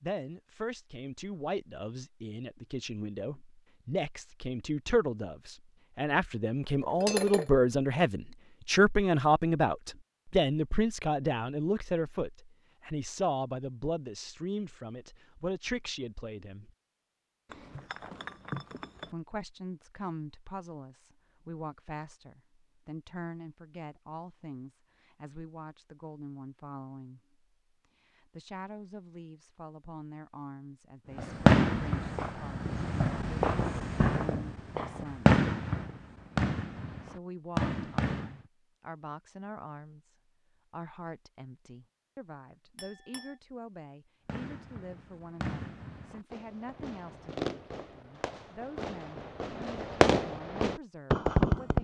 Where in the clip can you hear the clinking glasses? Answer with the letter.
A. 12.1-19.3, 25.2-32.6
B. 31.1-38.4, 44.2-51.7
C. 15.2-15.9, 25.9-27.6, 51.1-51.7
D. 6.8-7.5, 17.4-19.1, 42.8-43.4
D.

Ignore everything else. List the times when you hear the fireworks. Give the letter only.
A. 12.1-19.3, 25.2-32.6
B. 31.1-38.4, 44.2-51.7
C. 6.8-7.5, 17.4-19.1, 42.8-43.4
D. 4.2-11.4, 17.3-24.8
B.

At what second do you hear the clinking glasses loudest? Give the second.
7 s.